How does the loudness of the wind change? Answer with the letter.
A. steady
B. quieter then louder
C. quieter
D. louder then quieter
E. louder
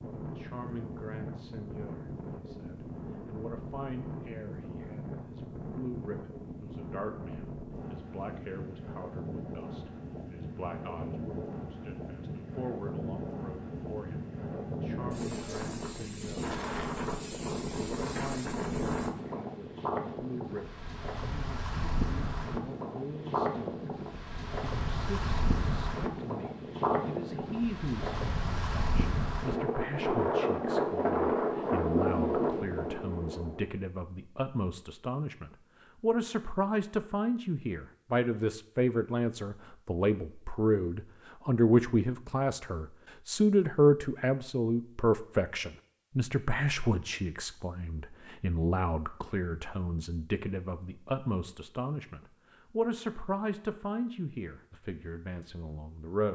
E.